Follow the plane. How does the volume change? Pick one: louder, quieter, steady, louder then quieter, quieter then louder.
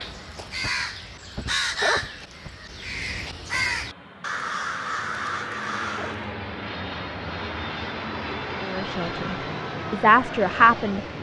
louder.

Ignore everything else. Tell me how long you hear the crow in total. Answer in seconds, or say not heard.
6 s.